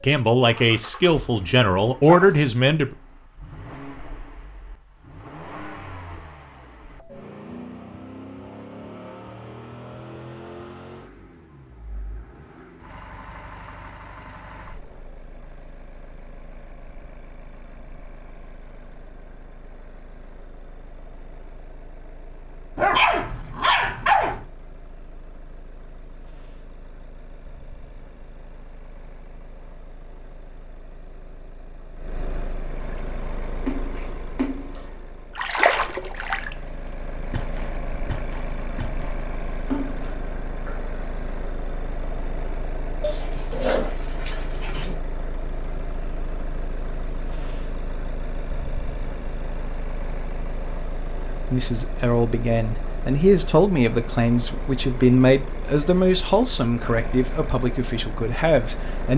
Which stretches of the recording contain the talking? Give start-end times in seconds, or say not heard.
0.0-3.0, 51.5-59.1.